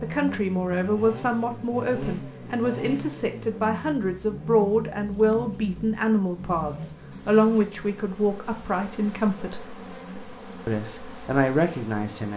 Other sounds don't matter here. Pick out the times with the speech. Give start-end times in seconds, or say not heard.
0.0-9.6, 10.7-12.3.